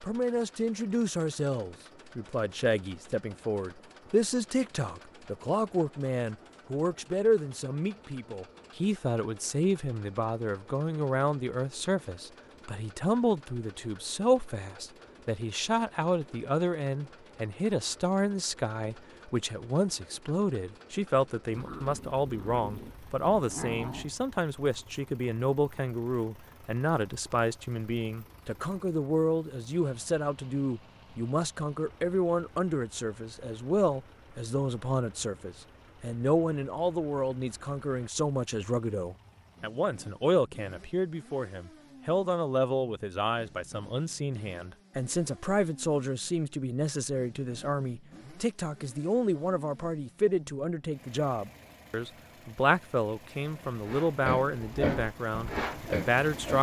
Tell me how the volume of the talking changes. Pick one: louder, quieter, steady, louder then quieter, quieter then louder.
steady.